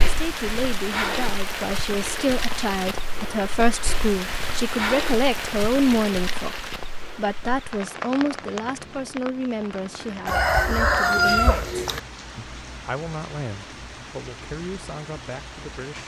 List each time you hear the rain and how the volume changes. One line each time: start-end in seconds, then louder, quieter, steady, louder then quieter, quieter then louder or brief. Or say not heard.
0.0-16.0 quieter.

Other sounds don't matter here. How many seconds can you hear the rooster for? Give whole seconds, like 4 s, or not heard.
2 s.